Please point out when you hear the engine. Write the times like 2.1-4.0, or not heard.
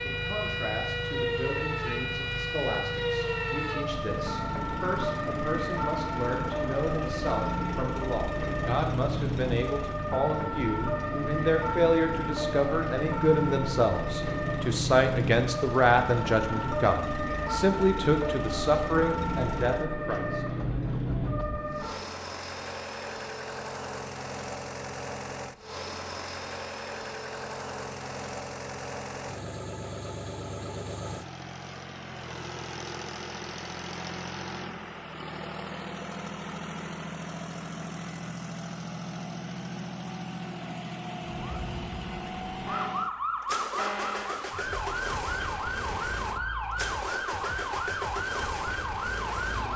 0.0-49.7.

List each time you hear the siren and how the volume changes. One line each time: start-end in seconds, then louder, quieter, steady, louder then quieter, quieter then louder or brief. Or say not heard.
0.0-22.1 steady
41.2-49.7 steady.